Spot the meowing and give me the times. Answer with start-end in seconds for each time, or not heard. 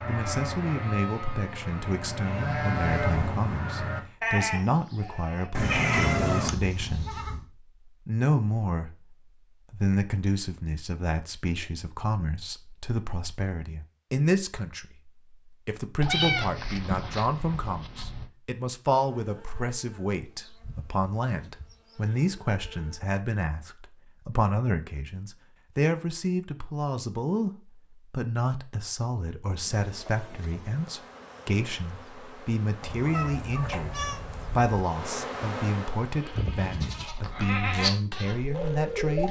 5.5-6.5, 16.0-18.3, 32.8-34.8.